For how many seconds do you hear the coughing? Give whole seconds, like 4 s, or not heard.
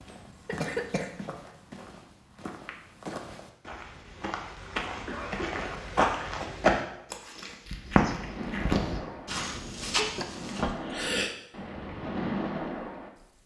3 s.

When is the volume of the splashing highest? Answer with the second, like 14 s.
12 s.